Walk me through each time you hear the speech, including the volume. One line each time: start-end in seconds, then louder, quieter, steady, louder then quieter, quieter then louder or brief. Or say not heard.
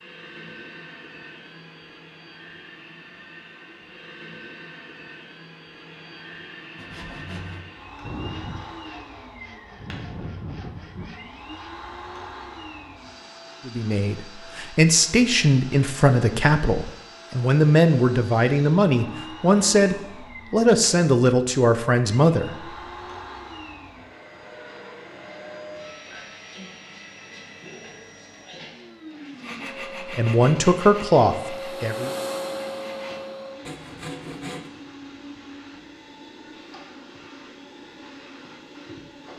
13.7-22.6 steady
30.1-32.1 brief.